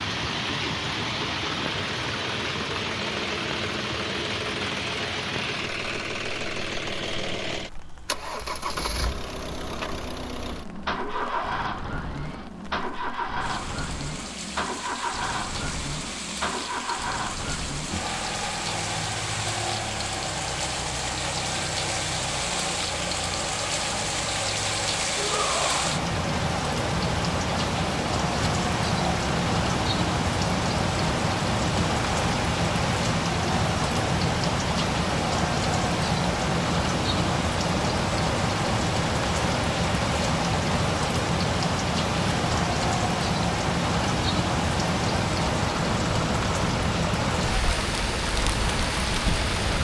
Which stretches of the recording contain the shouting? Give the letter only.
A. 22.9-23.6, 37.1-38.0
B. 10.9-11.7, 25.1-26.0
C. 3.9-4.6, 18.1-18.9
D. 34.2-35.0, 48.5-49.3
B.